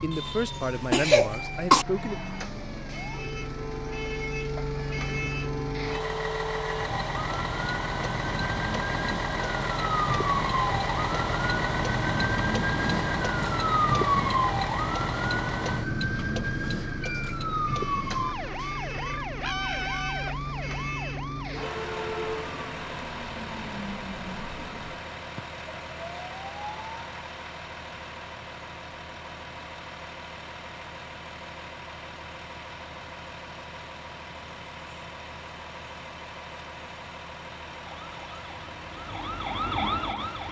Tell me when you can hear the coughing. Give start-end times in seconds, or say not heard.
0.1-1.9.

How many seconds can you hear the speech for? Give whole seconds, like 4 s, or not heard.
2 s.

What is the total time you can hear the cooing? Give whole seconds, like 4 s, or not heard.
not heard.